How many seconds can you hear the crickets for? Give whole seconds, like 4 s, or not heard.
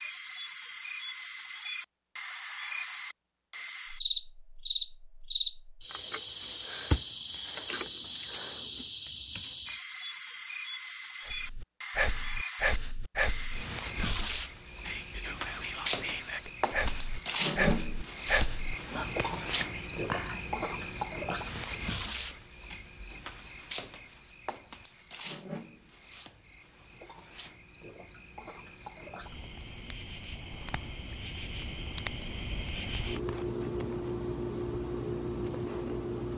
36 s.